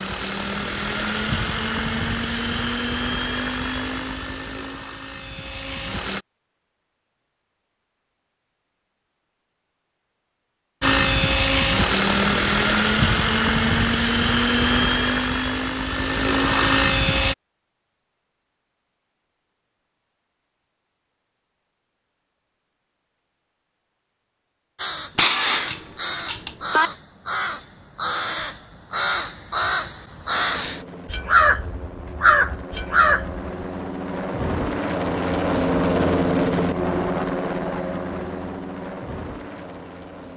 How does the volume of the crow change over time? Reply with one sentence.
The loudness of the crow goes up.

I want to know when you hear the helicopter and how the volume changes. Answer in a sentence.
The helicopter can be heard from 0.0 to 6.2 s, getting quieter; from 10.8 to 17.4 s, at a steady volume; and from 30.2 to 40.3 s, getting louder then quieter.